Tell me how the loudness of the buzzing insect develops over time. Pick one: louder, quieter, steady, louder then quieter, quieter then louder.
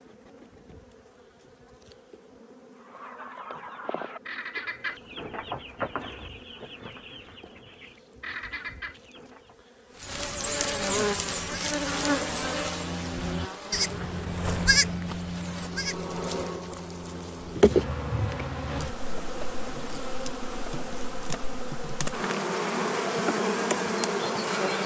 louder.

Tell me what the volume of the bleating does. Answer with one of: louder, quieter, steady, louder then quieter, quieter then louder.
louder then quieter.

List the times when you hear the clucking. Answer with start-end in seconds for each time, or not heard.
2.8-9.6.